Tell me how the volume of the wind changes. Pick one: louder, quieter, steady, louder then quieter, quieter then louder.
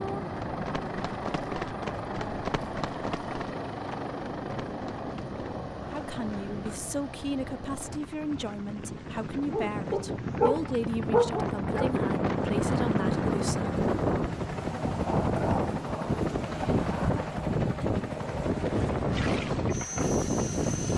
louder.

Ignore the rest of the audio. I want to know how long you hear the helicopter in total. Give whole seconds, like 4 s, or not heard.
21 s.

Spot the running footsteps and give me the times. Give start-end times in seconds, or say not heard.
0.0-6.8.